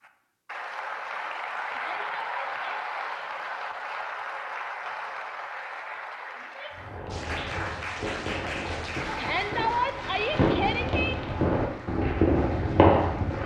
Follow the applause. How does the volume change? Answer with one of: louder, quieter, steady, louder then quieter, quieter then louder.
quieter.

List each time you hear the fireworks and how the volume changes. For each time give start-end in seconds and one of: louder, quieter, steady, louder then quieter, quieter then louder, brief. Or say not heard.
6.7-13.4 louder.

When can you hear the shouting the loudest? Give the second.
10 s.